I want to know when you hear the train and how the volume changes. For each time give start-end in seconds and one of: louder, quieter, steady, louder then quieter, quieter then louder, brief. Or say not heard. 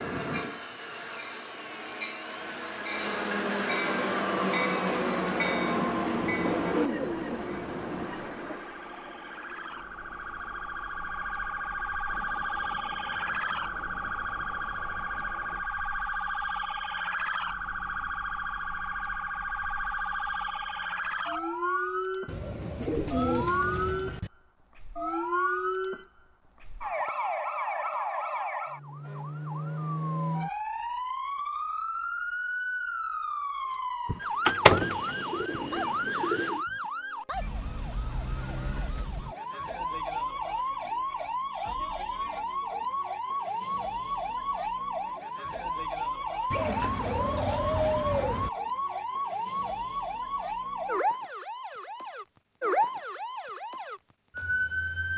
0.0-15.7 louder then quieter.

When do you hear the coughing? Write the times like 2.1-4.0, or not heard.
not heard.